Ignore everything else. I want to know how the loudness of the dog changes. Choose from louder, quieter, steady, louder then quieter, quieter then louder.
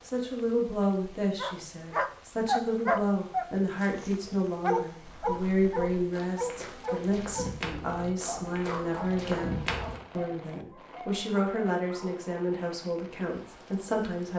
quieter.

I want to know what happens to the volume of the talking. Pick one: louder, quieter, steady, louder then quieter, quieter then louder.
steady.